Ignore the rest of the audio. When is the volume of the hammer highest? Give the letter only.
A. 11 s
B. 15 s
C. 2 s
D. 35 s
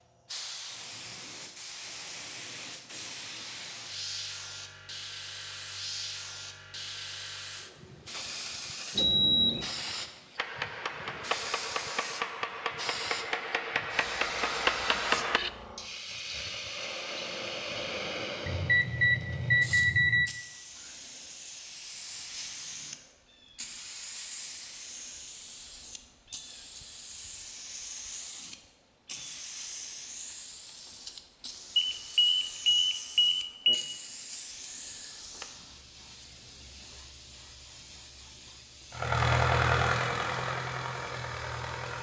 B.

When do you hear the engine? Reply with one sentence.
The engine can be heard from 38.9 to 41.9 s.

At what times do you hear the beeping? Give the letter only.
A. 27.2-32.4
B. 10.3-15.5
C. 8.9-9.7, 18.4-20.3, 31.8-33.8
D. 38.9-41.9
C.